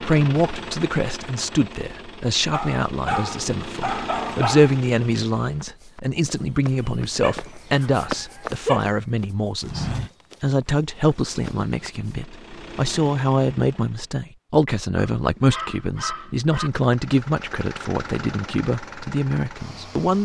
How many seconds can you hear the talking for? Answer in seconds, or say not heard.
20 s.